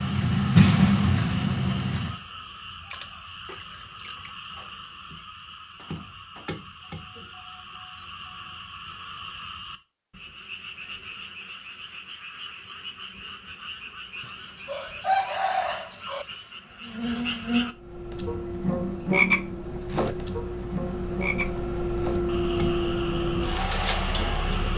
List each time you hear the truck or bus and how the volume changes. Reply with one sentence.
You can hear the truck or bus briefly from 0.0 to 2.2 s; and from 17.7 to 24.7 s, getting louder.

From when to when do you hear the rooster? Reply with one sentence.
You can hear the rooster from 14.2 to 16.2 s.